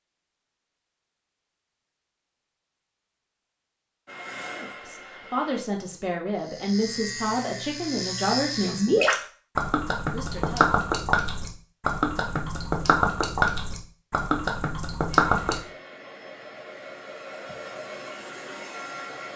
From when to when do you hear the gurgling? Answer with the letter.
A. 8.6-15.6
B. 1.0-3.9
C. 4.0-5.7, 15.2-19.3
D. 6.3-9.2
A.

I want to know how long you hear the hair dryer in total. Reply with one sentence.
You can hear the hair dryer for 6 seconds altogether.